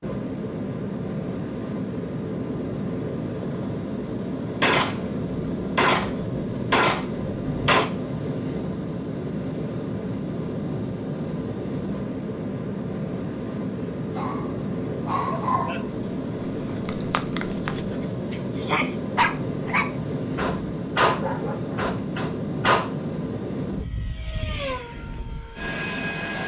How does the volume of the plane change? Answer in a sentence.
The loudness of the plane stays about the same.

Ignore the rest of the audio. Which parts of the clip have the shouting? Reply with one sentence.
The shouting can be heard from 18.6 to 19.0 s.